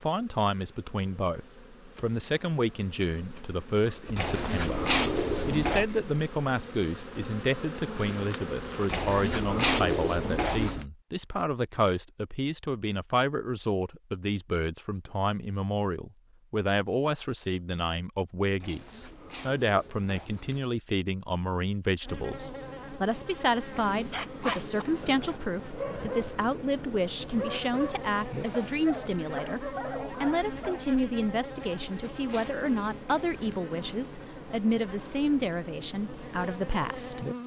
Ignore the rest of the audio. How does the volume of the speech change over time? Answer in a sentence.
The volume of the speech stays about the same.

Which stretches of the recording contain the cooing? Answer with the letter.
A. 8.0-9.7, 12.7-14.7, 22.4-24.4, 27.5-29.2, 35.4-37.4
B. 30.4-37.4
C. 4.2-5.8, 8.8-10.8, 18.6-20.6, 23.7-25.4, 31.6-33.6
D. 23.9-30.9
C.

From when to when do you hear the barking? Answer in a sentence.
You can hear the barking from 23.9 to 30.9 s.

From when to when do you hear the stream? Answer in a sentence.
The stream can't be heard in this clip.